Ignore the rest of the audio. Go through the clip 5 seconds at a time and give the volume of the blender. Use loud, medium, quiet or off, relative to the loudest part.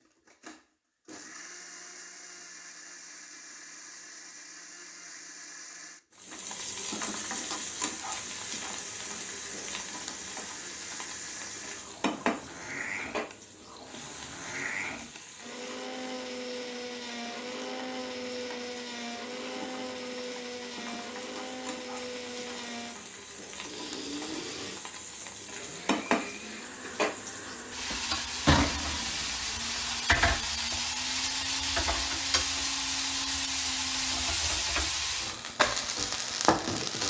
medium, medium, loud, loud, loud, medium, medium, off.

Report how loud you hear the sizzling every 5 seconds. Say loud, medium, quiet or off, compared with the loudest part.
off, medium, medium, quiet, quiet, loud, loud, loud.